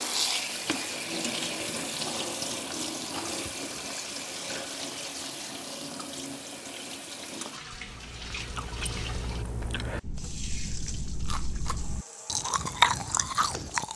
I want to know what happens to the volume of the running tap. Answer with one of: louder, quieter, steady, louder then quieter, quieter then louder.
quieter.